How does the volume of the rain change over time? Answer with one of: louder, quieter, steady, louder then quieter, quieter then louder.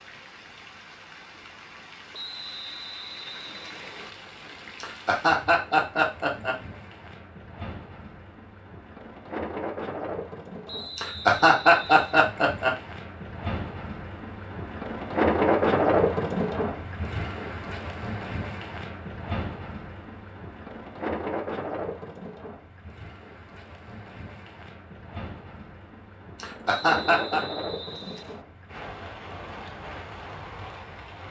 louder then quieter.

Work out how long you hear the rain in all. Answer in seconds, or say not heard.
31 s.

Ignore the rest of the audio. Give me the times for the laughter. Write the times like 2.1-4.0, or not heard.
4.8-6.5, 10.9-12.8, 26.4-27.4.